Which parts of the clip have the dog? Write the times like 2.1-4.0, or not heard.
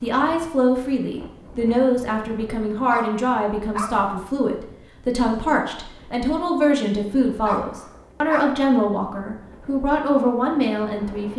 2.9-4.1, 7.5-8.7.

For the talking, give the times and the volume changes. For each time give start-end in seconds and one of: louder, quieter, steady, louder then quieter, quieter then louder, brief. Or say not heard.
0.0-11.3 steady.